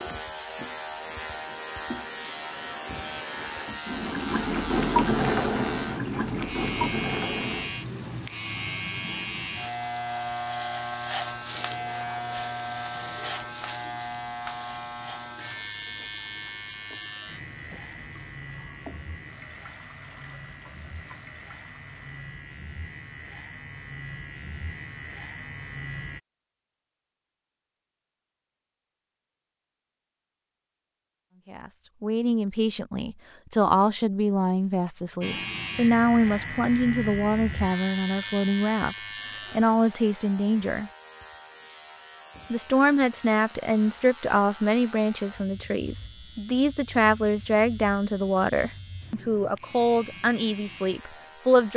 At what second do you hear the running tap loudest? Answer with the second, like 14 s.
5 s.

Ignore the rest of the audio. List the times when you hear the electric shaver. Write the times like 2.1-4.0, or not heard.
0.0-26.2, 35.2-51.7.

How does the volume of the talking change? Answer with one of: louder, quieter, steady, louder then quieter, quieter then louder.
steady.